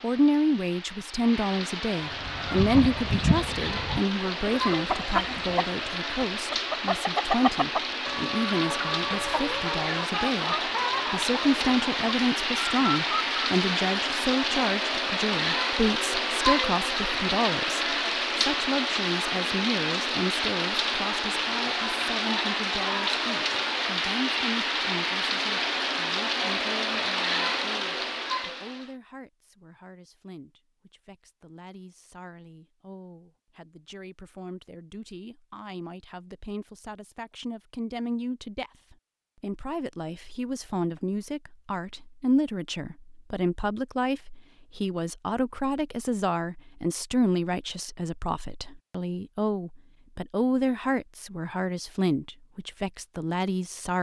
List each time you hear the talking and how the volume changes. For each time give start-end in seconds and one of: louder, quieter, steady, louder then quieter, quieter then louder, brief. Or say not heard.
0.0-53.9 quieter then louder.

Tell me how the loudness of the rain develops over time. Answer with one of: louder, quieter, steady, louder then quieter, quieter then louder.
louder.